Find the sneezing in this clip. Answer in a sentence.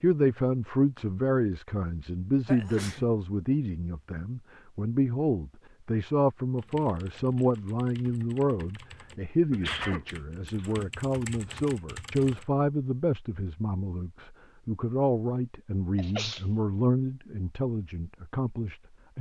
The sneezing can be heard from 2.5 to 3.0 s, from 9.5 to 10.8 s and from 15.9 to 16.4 s.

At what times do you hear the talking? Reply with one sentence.
You can hear the talking from 0.0 to 19.1 s.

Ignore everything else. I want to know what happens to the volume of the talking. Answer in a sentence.
The loudness of the talking stays about the same.